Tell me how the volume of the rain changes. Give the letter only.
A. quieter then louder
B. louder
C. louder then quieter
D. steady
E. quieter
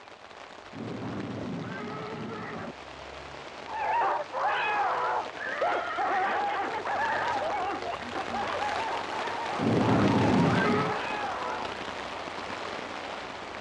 B.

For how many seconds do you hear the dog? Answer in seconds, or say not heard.
8 s.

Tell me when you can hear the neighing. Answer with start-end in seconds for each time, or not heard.
0.7-2.8, 5.3-7.3, 9.6-11.0.